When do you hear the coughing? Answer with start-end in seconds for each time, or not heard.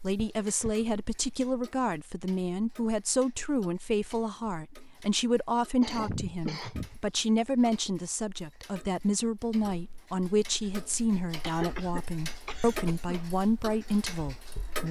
0.1-0.8, 5.8-7.0, 11.4-13.2.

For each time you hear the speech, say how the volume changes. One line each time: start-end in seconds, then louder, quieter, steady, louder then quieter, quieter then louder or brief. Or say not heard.
0.0-14.8 steady.